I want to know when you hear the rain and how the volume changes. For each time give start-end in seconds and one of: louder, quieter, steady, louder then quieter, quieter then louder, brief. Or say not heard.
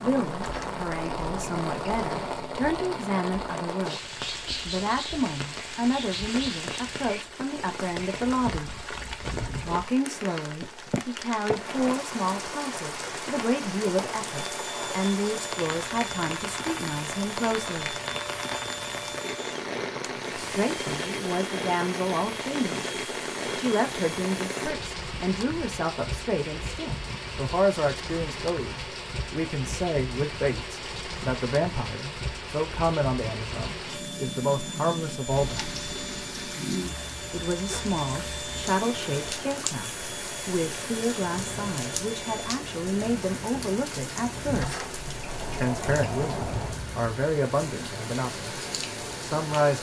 0.0-49.7 steady.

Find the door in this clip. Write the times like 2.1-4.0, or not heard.
0.3-2.5, 44.5-46.8.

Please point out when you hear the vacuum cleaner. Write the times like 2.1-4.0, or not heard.
14.3-24.8, 33.9-42.5.